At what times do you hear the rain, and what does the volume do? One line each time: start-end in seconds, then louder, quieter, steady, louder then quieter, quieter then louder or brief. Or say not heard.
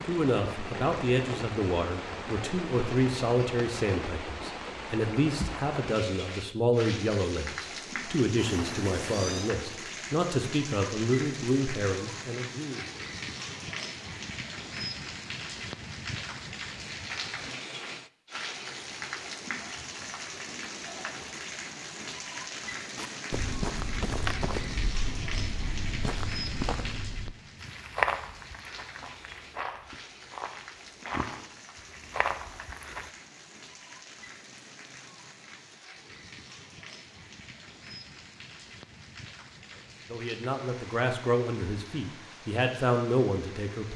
0.0-43.9 quieter.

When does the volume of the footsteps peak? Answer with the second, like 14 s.
28 s.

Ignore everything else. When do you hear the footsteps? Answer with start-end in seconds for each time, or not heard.
22.9-33.1.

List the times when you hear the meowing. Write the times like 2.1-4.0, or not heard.
8.3-9.5.